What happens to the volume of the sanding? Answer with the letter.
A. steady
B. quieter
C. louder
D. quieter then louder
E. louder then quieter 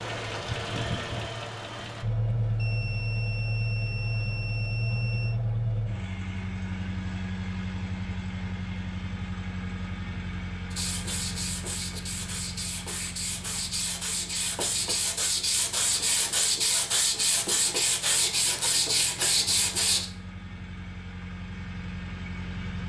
C.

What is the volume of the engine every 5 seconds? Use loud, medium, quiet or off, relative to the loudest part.
loud, loud, medium, quiet, medium.